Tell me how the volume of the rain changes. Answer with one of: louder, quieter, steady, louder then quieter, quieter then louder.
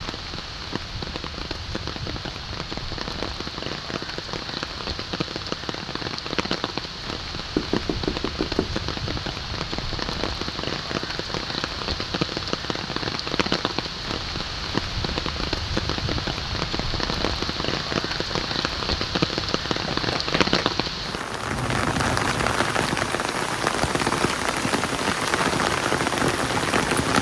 louder.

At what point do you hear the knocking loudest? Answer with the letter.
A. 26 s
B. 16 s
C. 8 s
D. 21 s
C.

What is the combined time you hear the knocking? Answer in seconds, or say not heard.
2 s.